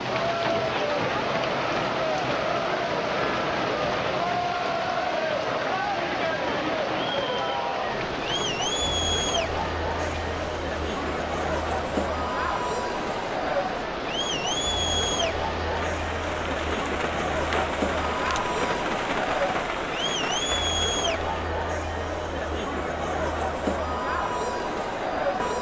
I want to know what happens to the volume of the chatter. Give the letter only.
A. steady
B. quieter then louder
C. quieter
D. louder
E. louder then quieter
A.